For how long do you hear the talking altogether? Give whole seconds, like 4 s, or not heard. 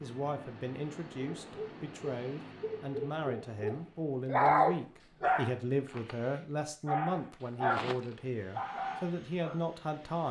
10 s.